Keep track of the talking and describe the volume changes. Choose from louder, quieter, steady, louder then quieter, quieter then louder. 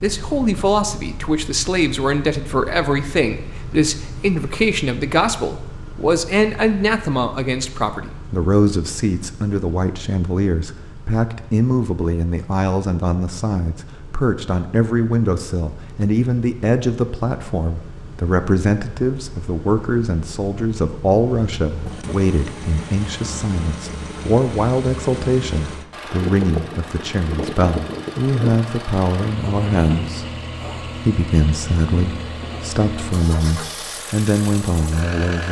steady.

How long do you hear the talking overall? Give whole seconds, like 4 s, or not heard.
35 s.